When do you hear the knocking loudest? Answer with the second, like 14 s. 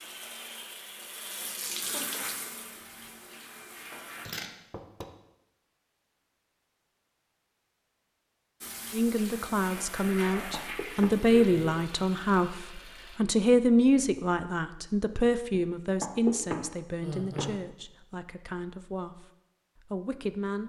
16 s.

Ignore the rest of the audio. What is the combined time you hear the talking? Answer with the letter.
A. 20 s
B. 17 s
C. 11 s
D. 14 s
C.